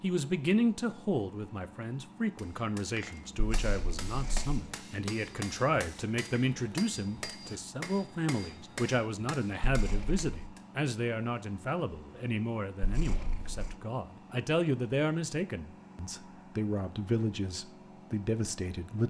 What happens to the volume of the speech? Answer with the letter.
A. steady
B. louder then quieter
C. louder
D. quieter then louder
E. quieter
A.